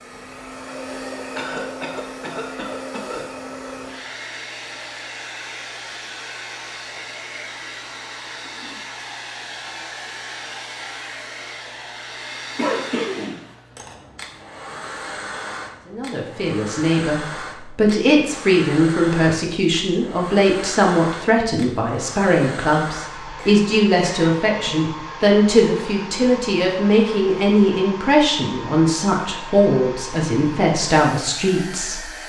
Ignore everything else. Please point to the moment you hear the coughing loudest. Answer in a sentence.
The loudest moment of the coughing is at 13 seconds.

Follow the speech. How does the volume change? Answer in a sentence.
The loudness of the speech stays about the same.